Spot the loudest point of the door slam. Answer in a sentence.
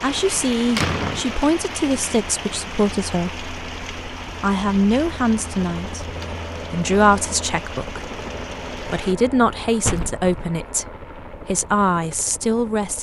The volume of the door slam peaks at 1 second.